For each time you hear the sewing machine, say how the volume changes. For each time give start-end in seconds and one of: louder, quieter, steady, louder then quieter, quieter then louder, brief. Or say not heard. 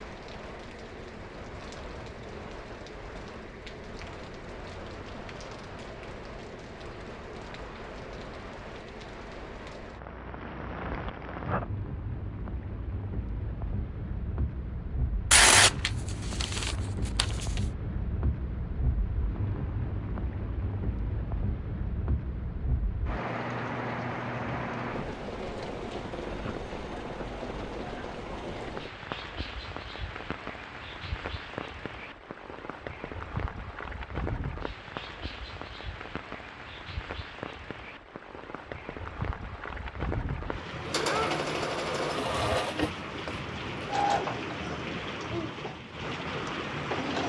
40.8-47.2 quieter.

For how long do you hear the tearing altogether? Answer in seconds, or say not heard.
2 s.